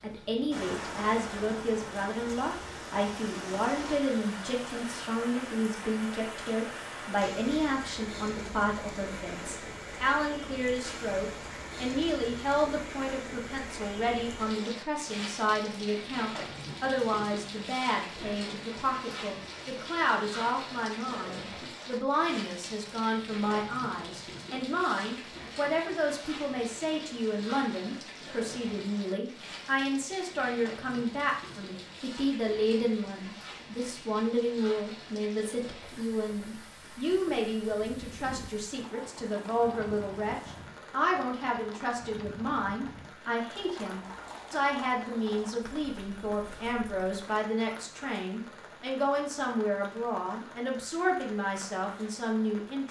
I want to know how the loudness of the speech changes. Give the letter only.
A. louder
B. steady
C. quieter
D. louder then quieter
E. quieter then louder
B.